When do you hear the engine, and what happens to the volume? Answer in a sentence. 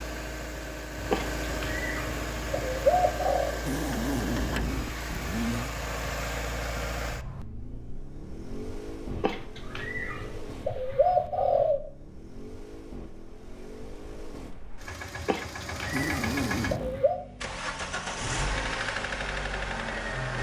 You can hear the engine from 0.0 to 20.3 s, getting quieter then louder.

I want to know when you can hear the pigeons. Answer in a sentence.
You can hear the pigeons from 0.9 to 3.5 s, from 9.1 to 11.8 s and from 15.2 to 17.2 s.